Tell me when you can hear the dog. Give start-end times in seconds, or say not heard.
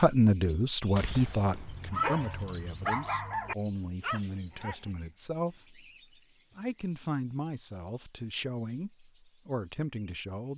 1.6-4.9.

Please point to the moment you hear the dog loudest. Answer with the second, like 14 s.
2 s.